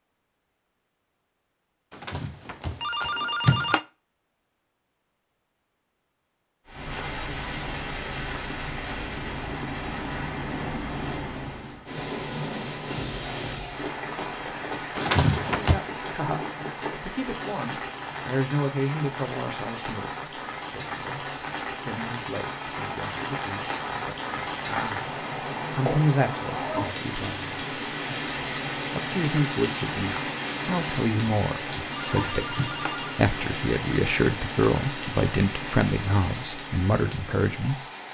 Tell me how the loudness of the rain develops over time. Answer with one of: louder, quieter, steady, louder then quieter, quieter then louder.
steady.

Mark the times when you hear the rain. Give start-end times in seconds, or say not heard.
6.7-38.0.